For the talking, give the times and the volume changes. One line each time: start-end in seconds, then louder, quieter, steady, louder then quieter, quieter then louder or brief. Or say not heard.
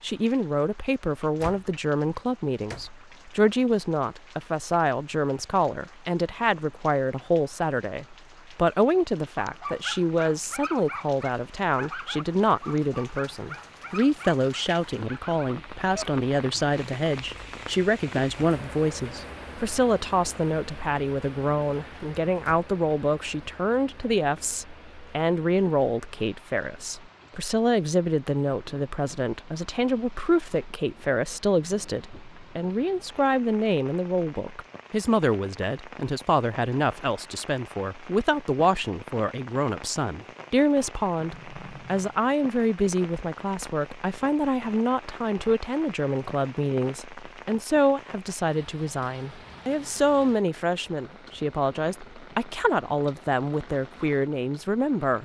0.0-55.2 steady.